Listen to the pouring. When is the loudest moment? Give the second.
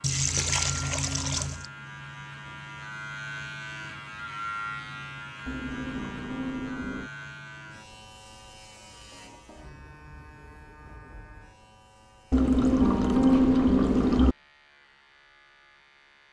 13 s.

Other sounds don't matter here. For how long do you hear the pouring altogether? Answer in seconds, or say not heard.
5 s.